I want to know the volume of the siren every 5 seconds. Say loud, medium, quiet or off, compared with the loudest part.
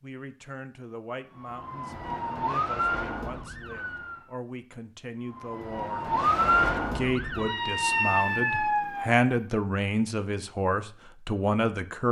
medium, loud, off.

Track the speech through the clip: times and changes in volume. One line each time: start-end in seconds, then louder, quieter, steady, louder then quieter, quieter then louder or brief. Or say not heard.
0.0-12.0 louder.